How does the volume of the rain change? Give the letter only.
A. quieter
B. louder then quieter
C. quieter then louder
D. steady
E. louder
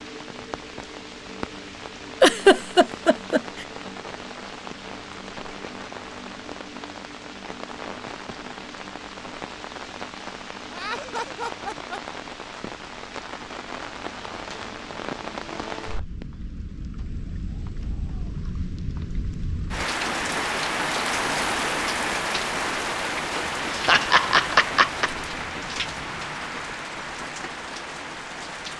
E.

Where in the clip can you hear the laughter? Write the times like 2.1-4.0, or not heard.
2.2-3.6, 10.7-12.0, 23.7-25.1.